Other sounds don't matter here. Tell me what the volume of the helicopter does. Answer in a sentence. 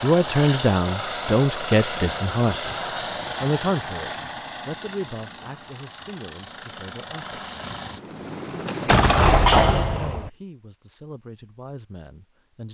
The loudness of the helicopter goes down, then up.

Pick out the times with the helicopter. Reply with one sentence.
You can hear the helicopter from 0.0 to 9.1 s.